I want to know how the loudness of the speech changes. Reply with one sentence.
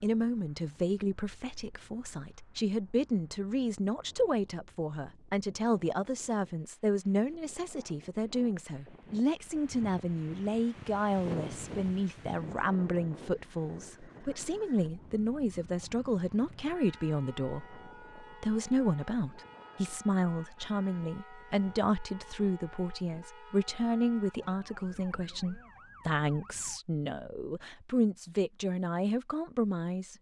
The loudness of the speech stays about the same.